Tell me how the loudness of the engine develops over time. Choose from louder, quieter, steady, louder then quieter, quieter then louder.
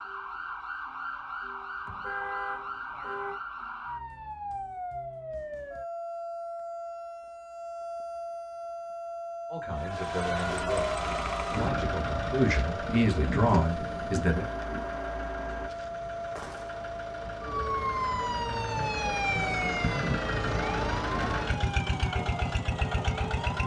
quieter then louder.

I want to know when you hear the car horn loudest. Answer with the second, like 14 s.
2 s.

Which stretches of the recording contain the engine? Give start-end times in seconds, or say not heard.
9.8-23.6.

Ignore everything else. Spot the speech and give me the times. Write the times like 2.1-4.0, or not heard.
9.4-14.4.